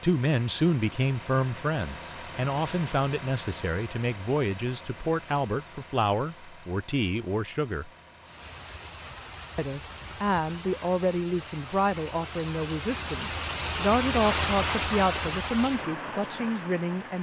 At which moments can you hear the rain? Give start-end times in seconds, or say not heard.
8.2-17.1.